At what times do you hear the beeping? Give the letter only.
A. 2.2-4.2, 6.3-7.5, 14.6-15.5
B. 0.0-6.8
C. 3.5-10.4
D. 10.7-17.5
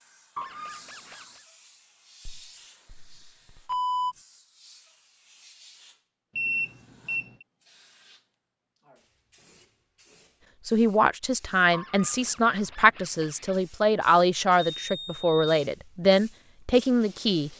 A.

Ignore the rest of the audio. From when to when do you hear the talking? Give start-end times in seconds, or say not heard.
10.7-17.5.